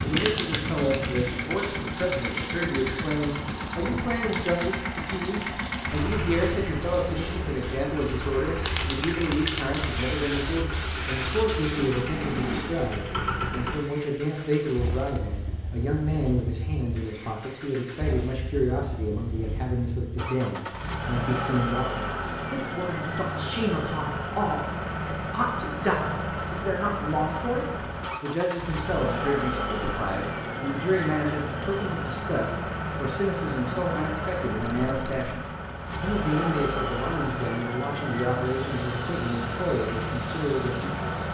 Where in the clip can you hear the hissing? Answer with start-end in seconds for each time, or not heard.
0.0-12.9, 38.4-41.2.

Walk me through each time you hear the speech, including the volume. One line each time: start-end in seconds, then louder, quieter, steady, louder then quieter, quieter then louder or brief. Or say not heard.
0.0-41.2 steady.